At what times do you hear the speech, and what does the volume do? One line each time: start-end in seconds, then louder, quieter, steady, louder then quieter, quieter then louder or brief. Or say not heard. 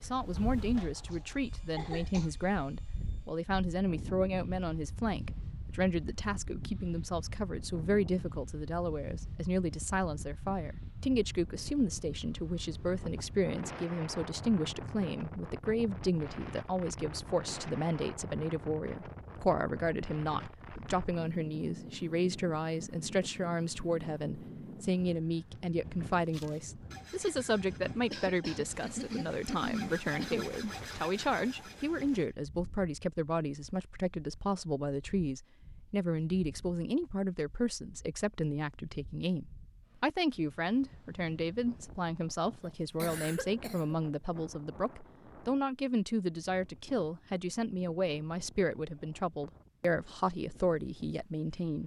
0.0-51.8 steady.